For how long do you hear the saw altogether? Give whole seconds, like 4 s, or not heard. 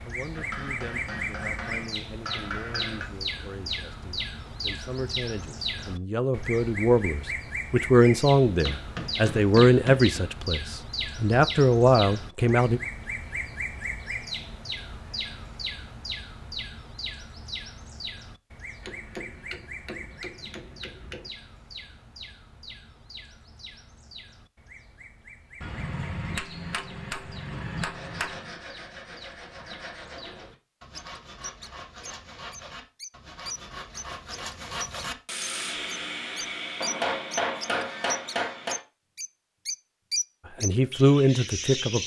11 s.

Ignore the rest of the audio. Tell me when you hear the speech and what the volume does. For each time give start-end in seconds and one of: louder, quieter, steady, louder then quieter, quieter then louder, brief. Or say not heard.
0.1-12.8 louder
40.6-42.0 brief.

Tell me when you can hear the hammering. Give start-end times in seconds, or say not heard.
0.3-3.1, 8.7-10.2, 18.8-21.3, 25.6-28.5, 36.8-38.8.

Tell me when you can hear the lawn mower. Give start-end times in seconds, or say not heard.
not heard.